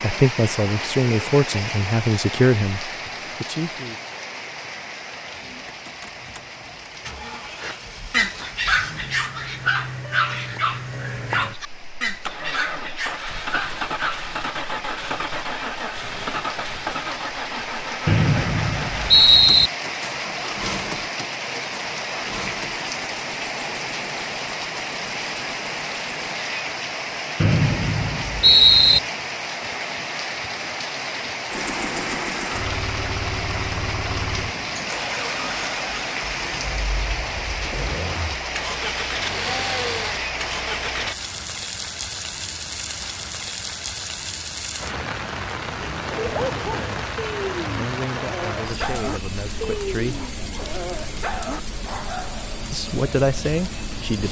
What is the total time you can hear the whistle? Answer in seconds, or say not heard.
3 s.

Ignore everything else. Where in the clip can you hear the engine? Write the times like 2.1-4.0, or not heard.
5.3-26.4, 31.5-41.1.